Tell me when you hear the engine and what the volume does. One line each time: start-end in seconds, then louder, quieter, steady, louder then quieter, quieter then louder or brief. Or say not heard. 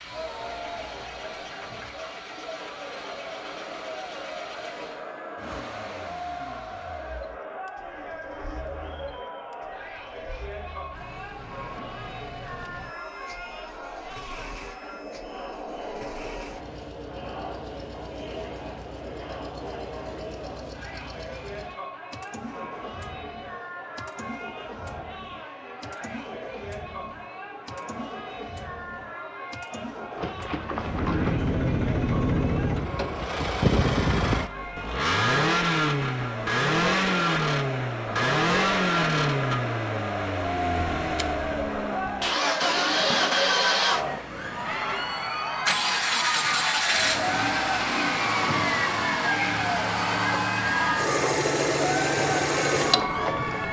0.0-53.6 louder.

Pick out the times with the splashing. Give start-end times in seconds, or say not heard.
30.1-31.4.